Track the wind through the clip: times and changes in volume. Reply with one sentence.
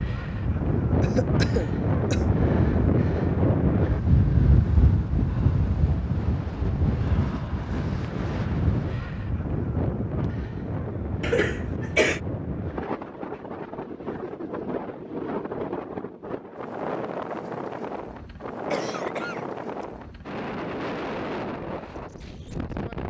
The wind can be heard from 0.0 to 23.0 s, getting quieter.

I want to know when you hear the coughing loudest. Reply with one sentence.
The loudest moment of the coughing is at 12 seconds.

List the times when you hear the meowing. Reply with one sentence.
The meowing can't be heard in this clip.